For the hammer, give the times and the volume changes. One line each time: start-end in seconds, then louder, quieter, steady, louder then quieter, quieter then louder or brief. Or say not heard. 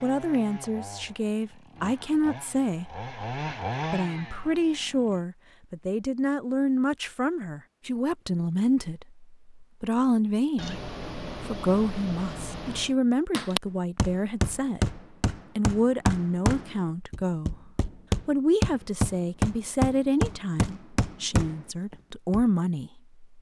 13.3-22.4 steady.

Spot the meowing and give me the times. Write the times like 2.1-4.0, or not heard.
10.6-12.9.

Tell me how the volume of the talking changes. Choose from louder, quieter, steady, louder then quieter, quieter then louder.
steady.